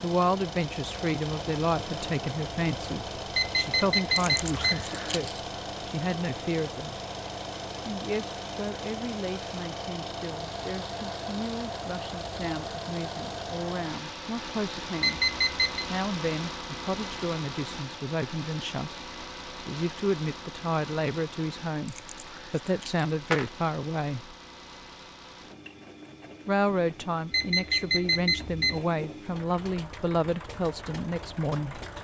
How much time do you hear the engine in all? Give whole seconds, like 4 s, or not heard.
32 s.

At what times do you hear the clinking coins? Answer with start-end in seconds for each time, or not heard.
4.2-5.4, 21.9-23.5.